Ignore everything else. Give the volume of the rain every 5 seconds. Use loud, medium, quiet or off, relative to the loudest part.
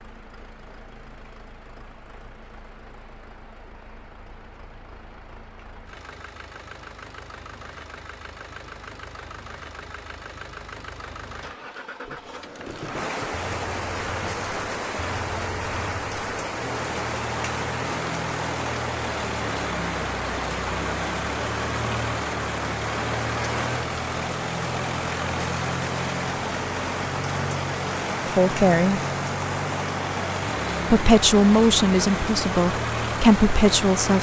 quiet, quiet, loud, loud, loud, loud, loud.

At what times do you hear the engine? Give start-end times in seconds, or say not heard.
0.0-34.1.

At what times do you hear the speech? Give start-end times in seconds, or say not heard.
28.2-29.0, 30.9-34.1.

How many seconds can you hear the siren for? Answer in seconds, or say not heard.
not heard.